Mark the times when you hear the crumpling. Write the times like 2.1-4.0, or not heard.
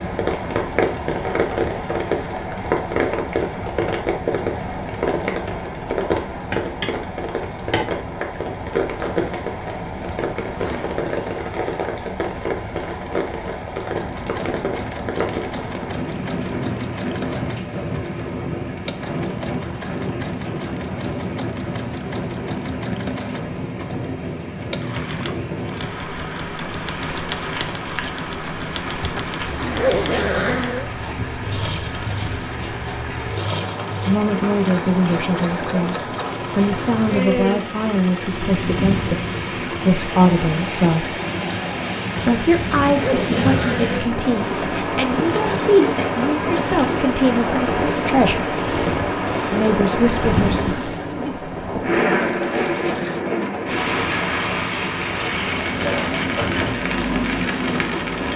26.8-28.4.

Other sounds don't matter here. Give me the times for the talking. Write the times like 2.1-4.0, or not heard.
34.0-41.1, 42.2-48.5, 49.5-50.8.